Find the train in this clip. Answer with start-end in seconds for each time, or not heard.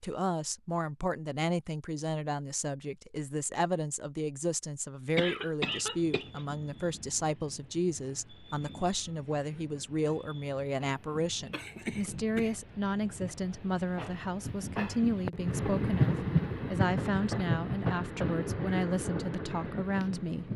5.7-20.5.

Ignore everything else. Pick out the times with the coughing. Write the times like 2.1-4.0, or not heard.
5.2-6.4, 11.5-12.6.